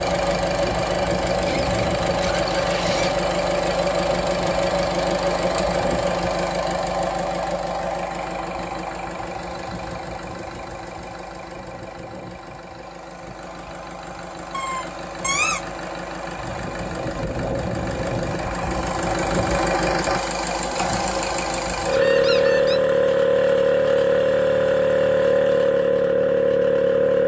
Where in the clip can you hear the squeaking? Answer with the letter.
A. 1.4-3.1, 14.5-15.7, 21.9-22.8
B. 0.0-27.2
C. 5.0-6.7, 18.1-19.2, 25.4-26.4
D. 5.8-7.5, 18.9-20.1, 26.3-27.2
A.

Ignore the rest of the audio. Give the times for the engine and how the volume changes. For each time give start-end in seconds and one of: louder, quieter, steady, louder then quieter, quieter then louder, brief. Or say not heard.
0.0-27.2 quieter then louder.